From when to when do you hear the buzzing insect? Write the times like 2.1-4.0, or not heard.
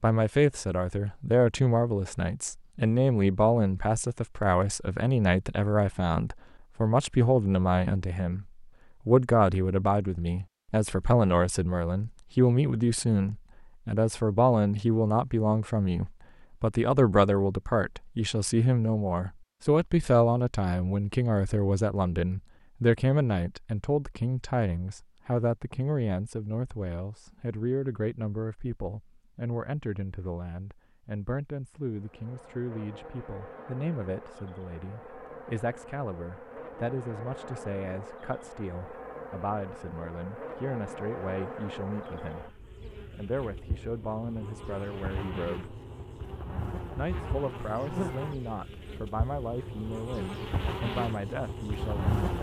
31.9-52.3.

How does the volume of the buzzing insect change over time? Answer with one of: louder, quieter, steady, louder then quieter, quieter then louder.
louder.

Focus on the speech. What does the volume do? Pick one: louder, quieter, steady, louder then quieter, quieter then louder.
quieter.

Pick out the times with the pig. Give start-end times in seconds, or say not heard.
not heard.